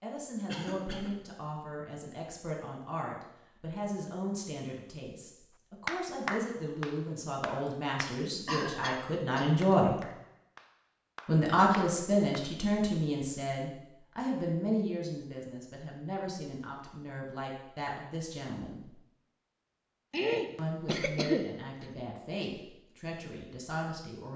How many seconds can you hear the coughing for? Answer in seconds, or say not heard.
4 s.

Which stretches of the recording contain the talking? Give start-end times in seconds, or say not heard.
0.0-9.9, 11.2-18.9, 20.6-24.3.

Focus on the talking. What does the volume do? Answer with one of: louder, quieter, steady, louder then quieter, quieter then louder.
louder then quieter.